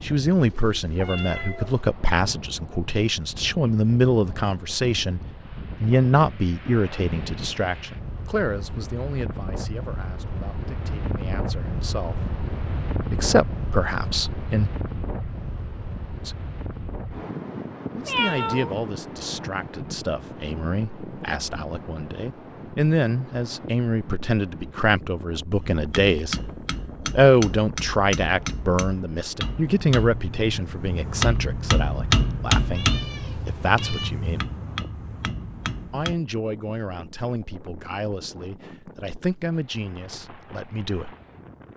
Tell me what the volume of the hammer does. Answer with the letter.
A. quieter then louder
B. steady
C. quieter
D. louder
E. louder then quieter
E.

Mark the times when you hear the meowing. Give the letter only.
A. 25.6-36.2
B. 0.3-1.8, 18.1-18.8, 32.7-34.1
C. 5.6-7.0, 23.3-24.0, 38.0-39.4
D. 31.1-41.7
B.